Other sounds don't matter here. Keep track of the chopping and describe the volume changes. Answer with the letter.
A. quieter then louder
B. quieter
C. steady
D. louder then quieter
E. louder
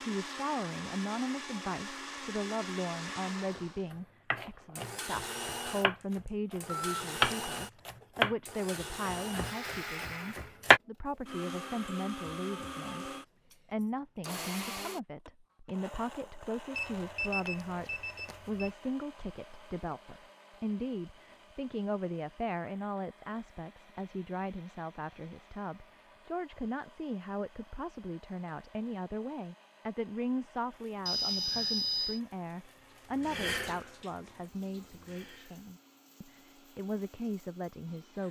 D.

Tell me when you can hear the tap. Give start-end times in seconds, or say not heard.
32.8-35.7.